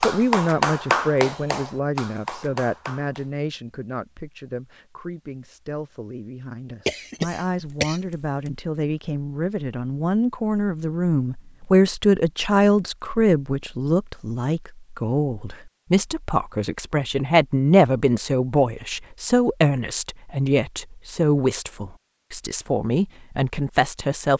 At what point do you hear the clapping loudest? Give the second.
1 s.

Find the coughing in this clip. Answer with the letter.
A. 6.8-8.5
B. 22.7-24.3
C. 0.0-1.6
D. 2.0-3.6
A.